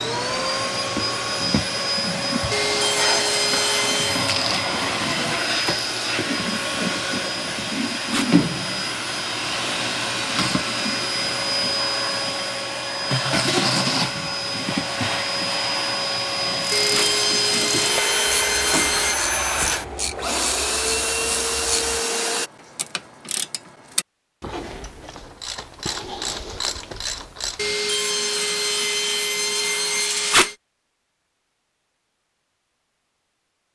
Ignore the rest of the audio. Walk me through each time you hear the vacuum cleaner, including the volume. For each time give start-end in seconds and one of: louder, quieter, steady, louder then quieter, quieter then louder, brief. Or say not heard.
0.0-22.5 steady.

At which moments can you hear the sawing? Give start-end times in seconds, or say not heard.
2.5-4.3, 16.7-19.1, 27.6-30.6.